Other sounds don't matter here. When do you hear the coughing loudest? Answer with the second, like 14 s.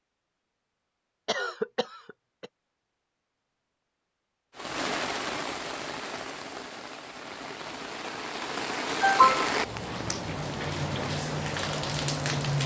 9 s.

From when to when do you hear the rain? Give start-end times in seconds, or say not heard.
4.5-12.6.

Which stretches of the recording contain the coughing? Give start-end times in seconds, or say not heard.
1.2-2.5, 9.0-9.6.